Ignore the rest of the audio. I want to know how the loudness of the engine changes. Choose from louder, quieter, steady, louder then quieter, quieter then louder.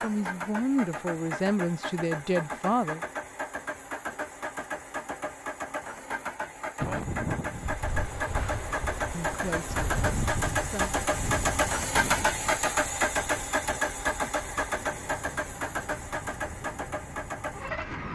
louder then quieter.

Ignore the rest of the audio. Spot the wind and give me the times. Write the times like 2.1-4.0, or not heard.
6.8-18.1.